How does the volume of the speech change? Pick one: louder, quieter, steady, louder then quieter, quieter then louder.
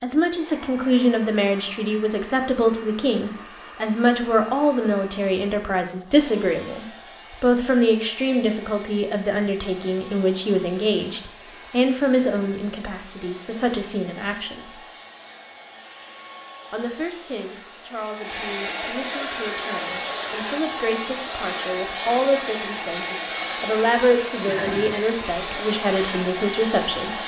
quieter then louder.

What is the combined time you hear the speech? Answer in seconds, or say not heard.
25 s.